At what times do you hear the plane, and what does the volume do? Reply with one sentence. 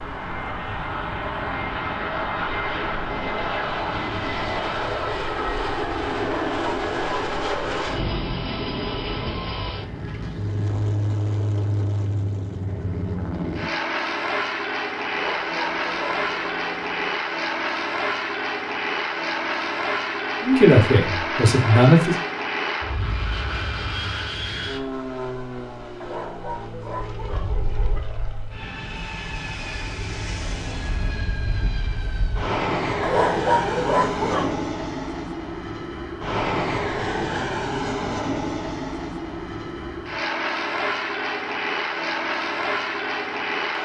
You can hear the plane from 0.0 to 43.8 s, at a steady volume.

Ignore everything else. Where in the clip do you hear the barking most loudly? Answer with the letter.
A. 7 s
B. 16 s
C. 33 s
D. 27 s
C.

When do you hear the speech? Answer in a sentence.
The speech can be heard from 20.4 to 22.1 s.